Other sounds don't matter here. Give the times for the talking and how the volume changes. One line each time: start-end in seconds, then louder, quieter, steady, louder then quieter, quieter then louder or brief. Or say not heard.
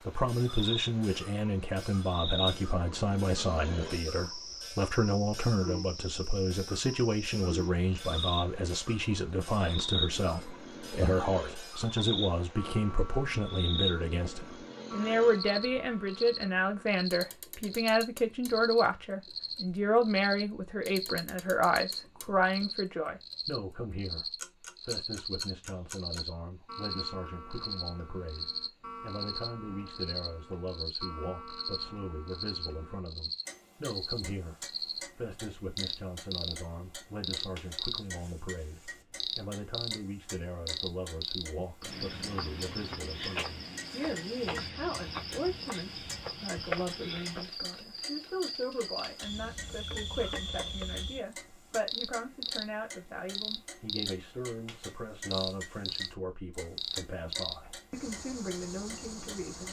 0.1-59.6 quieter.